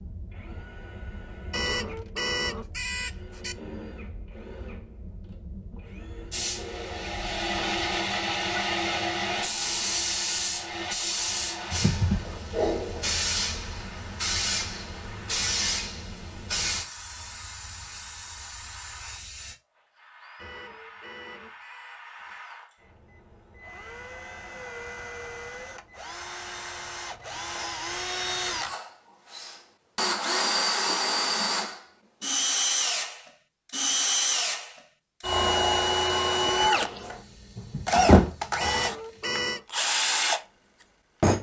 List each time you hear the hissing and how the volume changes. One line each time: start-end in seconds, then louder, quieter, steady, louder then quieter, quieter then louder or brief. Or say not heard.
6.3-19.6 quieter
37.0-39.4 brief.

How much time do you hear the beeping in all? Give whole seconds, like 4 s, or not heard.
5 s.